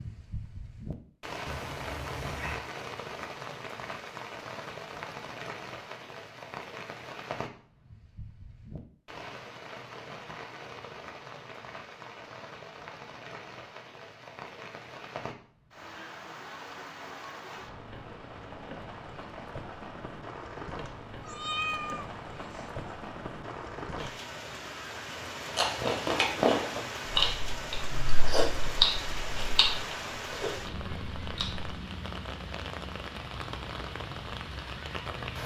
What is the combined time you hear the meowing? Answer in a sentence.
You can hear the meowing for 3 seconds altogether.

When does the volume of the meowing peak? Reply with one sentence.
The volume of the meowing peaks at 22 seconds.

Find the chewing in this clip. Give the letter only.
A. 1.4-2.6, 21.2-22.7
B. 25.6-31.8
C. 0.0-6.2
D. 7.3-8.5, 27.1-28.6
B.